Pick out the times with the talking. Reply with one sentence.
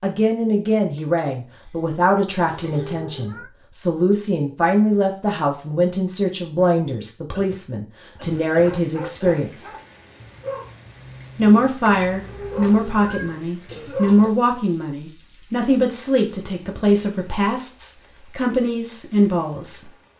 You can hear the talking from 0.0 to 9.7 s and from 11.3 to 19.9 s.